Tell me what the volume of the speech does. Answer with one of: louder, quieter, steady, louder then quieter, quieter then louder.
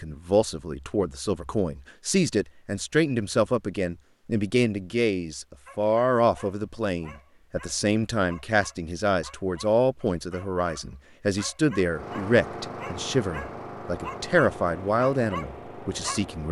steady.